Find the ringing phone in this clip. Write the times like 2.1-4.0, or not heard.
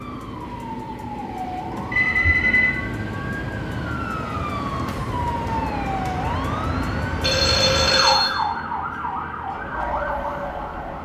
1.9-2.7, 7.2-8.3.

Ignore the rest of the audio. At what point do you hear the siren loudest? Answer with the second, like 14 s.
8 s.